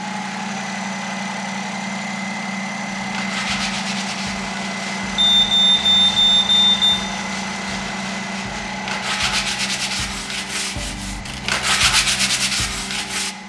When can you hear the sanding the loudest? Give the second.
12 s.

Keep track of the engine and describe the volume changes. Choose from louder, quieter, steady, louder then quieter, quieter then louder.
quieter.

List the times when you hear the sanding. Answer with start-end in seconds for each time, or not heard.
2.9-13.3.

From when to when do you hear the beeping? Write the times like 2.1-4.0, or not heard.
5.2-6.8.